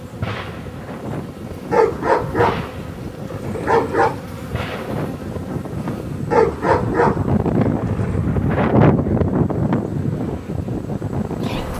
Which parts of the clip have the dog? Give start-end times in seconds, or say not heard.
1.7-4.2, 6.3-8.2.